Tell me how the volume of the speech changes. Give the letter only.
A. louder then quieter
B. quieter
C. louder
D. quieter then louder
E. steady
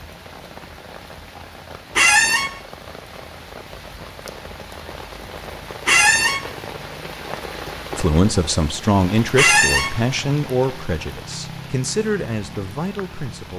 B.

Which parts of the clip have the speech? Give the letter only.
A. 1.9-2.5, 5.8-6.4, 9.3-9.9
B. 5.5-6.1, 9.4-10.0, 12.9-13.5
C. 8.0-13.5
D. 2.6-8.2
C.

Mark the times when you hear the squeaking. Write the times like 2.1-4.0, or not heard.
1.9-2.5, 5.8-6.4, 9.3-9.9.